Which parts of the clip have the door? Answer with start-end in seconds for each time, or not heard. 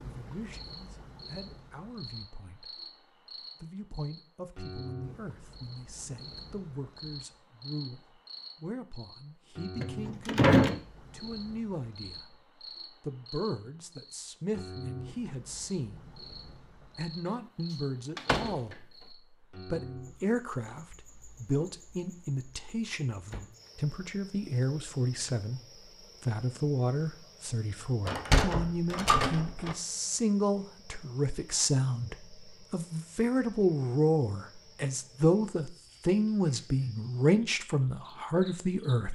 9.8-10.8, 18.1-18.8, 28.1-29.8.